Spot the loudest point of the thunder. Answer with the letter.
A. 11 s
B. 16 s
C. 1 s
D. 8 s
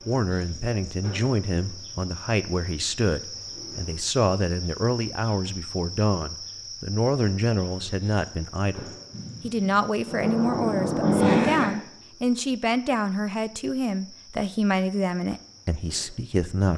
A.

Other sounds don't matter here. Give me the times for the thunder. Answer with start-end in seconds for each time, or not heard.
9.1-11.7.